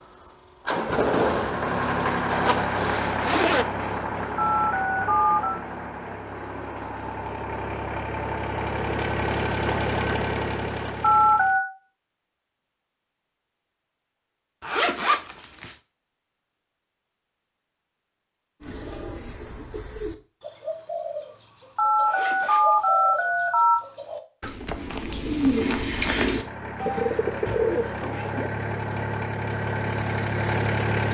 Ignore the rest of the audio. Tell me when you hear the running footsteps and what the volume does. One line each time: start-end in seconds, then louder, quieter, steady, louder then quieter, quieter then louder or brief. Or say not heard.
not heard.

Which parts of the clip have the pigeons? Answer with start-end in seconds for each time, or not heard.
18.6-28.5.